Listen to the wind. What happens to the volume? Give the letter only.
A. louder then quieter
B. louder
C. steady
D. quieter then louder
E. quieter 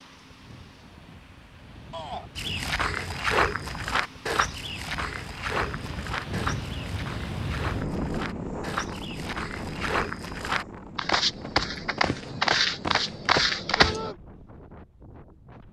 A.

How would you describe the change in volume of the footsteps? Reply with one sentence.
The volume of the footsteps goes down, then up.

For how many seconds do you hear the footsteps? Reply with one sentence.
The footsteps can be heard for 12 seconds in total.